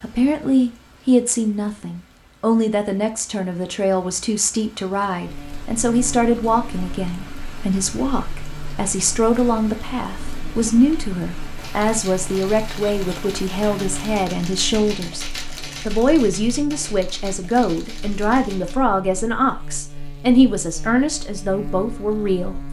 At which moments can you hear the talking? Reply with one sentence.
You can hear the talking from 0.0 to 15.2 s and from 15.8 to 22.6 s.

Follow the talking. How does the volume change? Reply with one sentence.
The volume of the talking stays about the same.